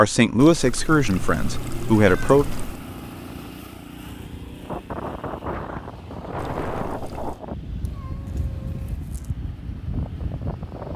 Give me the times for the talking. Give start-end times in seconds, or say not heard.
0.0-2.5.